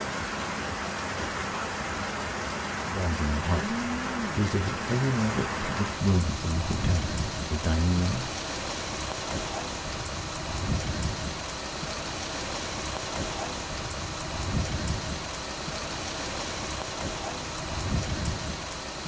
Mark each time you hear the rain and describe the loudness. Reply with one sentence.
The rain can be heard from 0.0 to 19.0 s, at a steady volume.